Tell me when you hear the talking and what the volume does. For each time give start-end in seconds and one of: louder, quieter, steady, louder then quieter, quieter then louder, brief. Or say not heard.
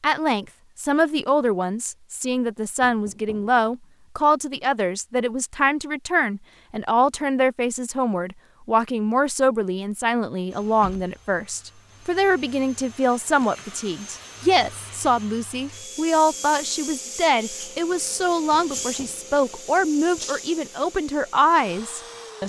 0.0-22.4 steady.